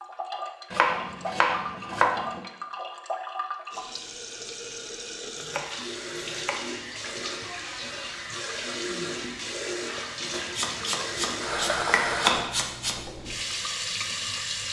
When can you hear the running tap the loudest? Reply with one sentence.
The volume of the running tap peaks at 12 seconds.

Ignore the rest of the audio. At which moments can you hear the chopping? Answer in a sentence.
The chopping can be heard from 0.7 to 2.5 s, from 5.3 to 6.7 s and from 10.3 to 12.9 s.